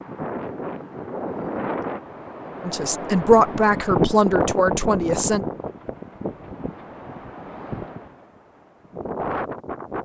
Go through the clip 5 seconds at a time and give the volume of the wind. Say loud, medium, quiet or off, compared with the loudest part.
loud, medium.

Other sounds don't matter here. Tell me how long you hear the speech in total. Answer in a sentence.
You can hear the speech for 3 seconds altogether.